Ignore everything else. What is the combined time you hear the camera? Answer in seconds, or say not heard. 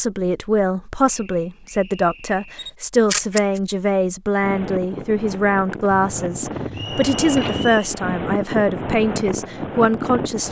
3 s.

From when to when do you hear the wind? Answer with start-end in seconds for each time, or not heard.
4.3-10.4.